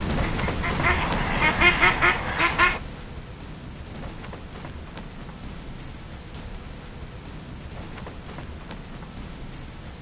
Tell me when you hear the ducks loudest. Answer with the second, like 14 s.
2 s.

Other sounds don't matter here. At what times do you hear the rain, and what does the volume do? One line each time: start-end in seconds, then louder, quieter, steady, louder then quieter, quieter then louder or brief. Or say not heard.
0.0-9.9 quieter.